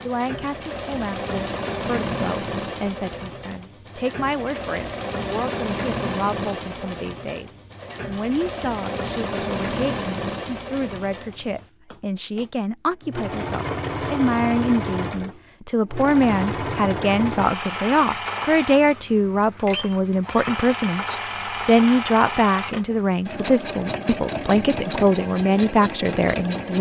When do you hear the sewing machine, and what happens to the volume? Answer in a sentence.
The sewing machine can be heard from 0.0 to 26.7 s, at a steady volume.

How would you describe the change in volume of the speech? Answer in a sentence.
The loudness of the speech goes up.